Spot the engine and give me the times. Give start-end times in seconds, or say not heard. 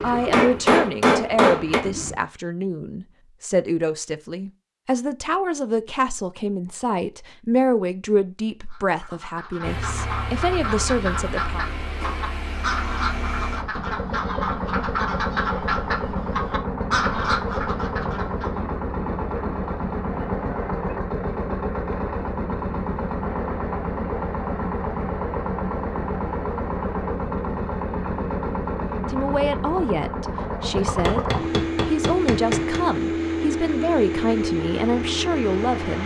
0.0-2.2, 9.6-36.0.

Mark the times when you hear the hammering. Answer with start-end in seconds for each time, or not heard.
0.1-1.9, 30.9-32.8.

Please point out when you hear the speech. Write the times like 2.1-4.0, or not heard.
0.0-11.7, 29.0-36.0.